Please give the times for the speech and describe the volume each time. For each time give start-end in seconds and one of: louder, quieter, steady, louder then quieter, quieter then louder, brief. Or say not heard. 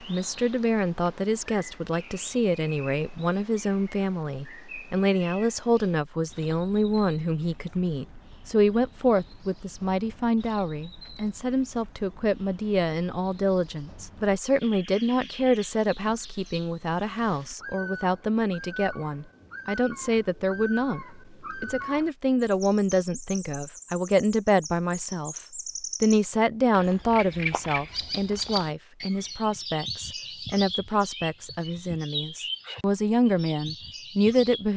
0.1-25.4 steady
26.0-34.7 quieter then louder.